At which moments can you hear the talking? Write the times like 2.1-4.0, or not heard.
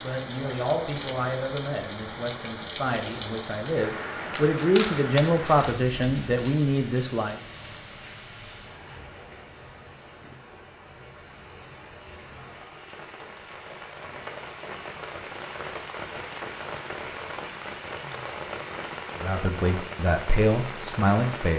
0.0-7.3, 19.2-21.5.